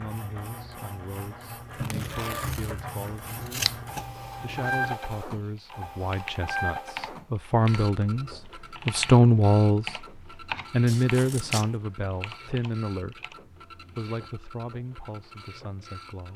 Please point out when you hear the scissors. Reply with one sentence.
You can hear the scissors from 3.2 to 4.8 s and from 10.8 to 11.8 s.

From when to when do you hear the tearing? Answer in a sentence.
You can hear the tearing from 1.7 to 3.1 s.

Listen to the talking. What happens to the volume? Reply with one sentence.
The volume of the talking goes up, then down.